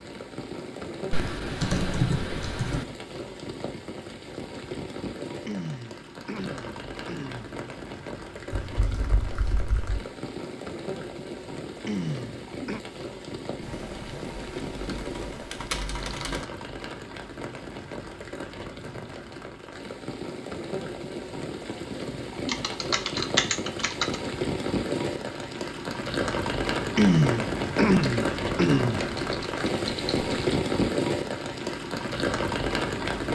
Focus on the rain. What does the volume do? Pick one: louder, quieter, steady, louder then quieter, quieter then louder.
louder.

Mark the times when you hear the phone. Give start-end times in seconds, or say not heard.
not heard.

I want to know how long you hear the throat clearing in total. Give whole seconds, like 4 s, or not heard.
5 s.